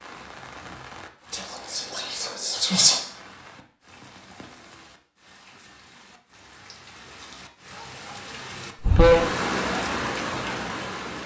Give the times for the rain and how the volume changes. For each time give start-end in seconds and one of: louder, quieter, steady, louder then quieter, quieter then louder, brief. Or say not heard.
0.0-11.2 quieter then louder.